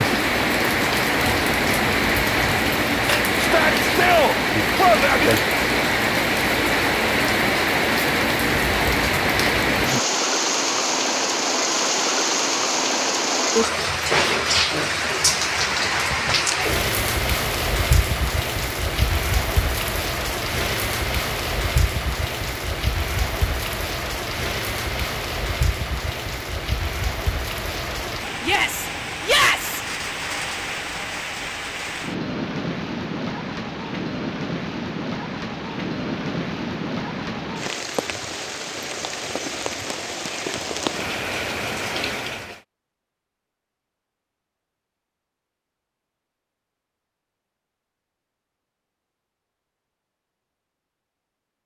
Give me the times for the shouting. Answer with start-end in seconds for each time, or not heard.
3.4-5.3, 28.4-29.8.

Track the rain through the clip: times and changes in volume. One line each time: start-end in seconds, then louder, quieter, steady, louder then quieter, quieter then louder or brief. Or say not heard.
0.0-42.6 quieter.